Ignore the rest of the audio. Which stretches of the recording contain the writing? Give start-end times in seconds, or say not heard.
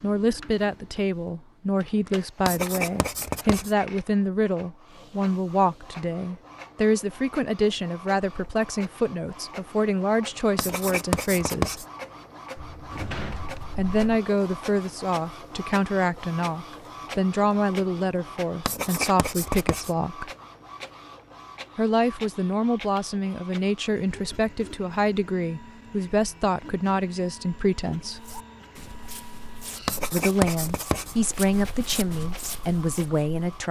2.5-3.7, 10.6-11.8, 18.6-19.9, 29.9-31.1.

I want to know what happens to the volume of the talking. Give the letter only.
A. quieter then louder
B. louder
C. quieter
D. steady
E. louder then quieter
D.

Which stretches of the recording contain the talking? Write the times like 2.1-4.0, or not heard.
0.0-11.8, 13.8-20.3, 21.8-28.2, 30.1-33.6.